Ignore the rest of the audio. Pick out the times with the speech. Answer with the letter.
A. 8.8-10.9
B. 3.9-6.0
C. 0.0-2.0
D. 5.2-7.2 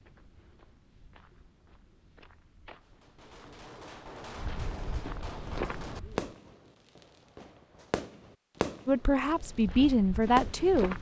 A.